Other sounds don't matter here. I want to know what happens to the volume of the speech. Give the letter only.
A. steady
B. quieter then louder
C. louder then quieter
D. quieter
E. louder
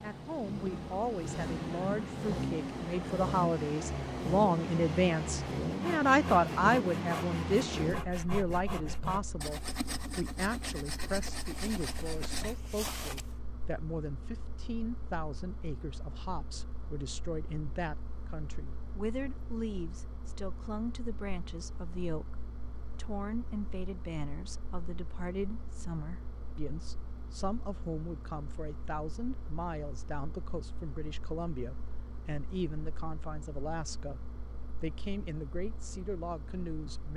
D.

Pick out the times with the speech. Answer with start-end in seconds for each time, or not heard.
0.0-37.1.